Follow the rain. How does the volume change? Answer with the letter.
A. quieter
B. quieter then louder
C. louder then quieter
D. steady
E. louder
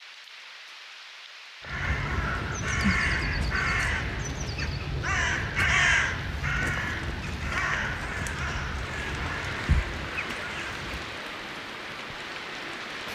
E.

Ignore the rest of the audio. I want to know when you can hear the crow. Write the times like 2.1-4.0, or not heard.
1.6-11.2.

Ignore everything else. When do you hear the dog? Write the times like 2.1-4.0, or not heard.
not heard.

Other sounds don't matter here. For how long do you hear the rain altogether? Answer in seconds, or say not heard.
13 s.